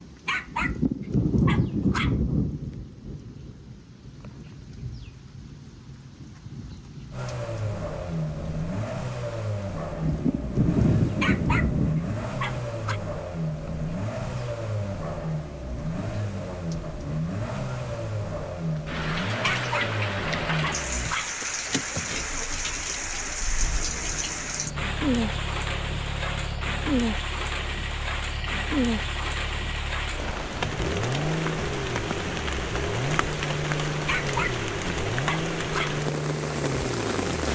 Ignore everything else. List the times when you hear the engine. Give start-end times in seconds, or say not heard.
7.1-37.5.